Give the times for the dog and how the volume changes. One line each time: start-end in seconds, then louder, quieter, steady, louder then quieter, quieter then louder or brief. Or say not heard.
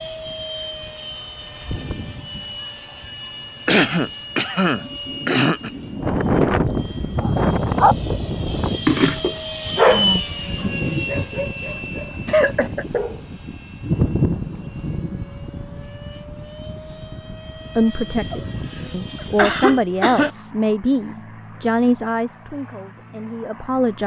7.2-13.2 quieter.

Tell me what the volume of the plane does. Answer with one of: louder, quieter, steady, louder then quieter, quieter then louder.
louder then quieter.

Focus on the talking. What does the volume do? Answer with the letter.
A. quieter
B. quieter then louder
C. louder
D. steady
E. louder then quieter
E.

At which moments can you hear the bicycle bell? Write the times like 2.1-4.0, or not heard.
not heard.